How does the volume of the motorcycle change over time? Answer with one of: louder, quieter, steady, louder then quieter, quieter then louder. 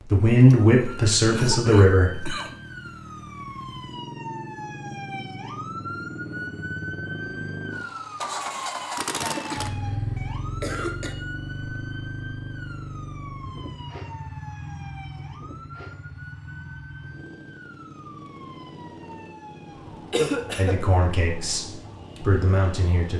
louder then quieter.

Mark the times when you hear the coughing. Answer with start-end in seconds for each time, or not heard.
0.5-2.5, 9.2-11.2, 20.1-20.8.